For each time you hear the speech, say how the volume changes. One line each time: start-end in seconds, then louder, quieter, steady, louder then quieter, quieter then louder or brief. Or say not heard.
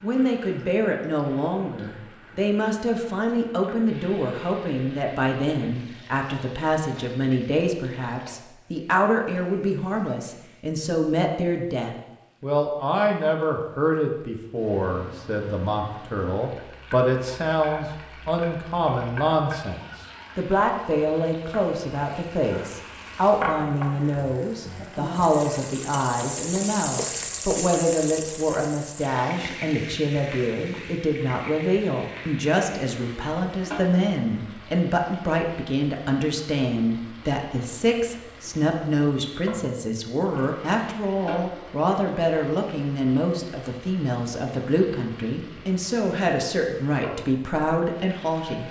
0.0-48.6 steady.